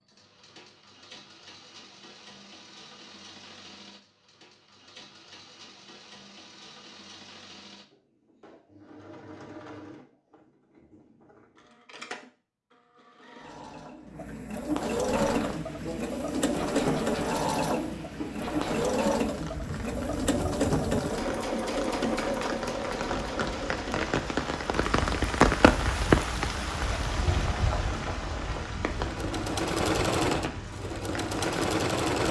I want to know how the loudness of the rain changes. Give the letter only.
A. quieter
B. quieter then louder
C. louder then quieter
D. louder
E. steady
C.